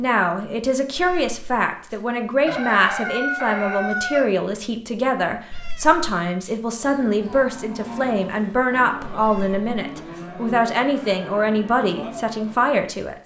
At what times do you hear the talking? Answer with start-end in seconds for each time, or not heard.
0.0-13.2.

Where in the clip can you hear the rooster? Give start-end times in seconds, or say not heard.
2.5-4.3.